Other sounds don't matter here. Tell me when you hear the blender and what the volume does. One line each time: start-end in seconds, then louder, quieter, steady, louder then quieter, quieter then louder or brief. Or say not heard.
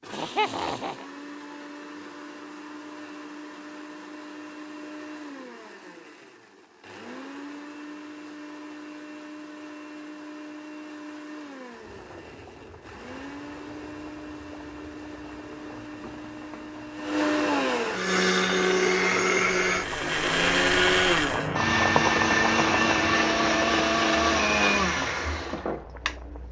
0.0-26.4 louder.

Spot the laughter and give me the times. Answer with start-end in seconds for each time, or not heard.
0.1-1.1.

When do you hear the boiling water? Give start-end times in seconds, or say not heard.
11.7-26.4.